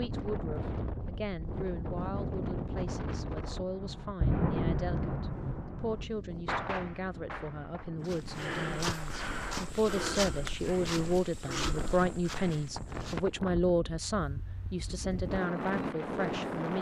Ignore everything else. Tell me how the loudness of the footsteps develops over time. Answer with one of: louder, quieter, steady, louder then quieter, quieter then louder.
quieter.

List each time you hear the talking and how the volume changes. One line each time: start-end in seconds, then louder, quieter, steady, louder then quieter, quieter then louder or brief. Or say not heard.
0.0-16.7 louder.